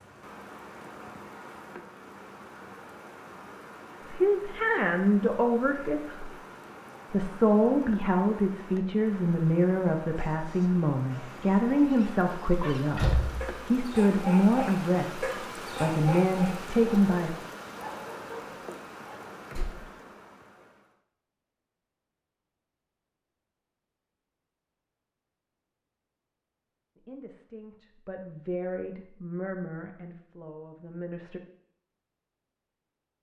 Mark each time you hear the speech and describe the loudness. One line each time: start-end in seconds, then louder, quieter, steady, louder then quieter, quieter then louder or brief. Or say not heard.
4.0-6.3 brief
7.1-17.4 steady
26.9-31.4 louder then quieter.